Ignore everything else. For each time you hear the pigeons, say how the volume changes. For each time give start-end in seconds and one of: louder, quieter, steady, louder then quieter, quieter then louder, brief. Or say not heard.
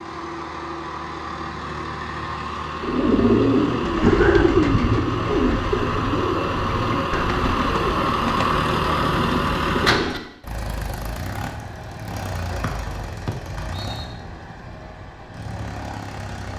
2.8-10.2 quieter.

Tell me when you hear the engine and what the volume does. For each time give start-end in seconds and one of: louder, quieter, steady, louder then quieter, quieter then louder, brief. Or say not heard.
0.0-16.5 louder then quieter.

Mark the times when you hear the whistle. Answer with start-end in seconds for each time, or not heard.
12.6-14.1.